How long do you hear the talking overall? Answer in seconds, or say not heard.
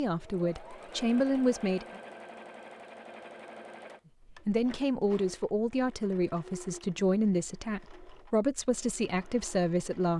8 s.